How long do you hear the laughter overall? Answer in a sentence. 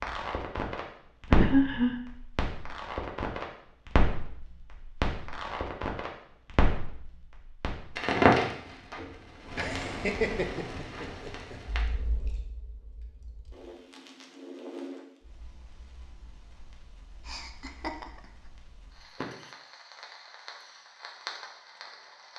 The laughter can be heard for 4 seconds in total.